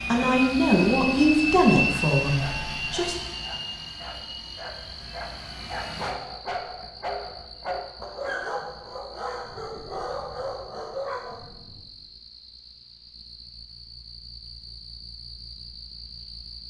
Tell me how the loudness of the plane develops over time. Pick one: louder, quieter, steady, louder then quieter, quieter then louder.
quieter.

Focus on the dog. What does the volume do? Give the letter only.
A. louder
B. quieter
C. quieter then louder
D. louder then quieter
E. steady
A.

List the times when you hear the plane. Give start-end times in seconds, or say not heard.
0.0-6.2.